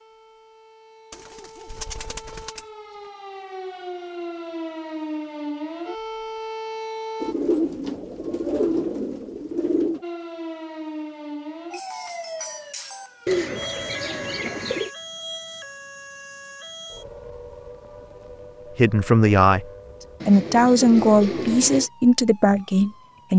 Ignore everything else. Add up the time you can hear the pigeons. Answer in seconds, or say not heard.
8 s.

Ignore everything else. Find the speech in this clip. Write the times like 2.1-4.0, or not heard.
18.8-19.6, 20.2-23.3.